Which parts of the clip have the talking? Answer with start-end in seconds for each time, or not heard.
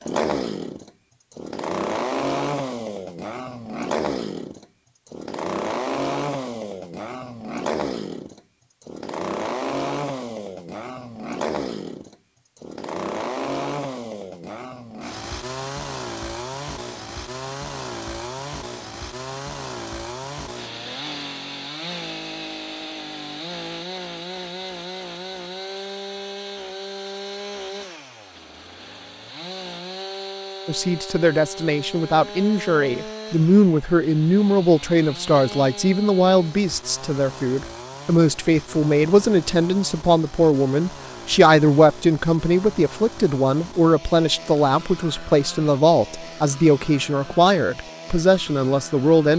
30.6-49.3.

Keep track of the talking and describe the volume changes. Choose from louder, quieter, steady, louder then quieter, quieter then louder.
steady.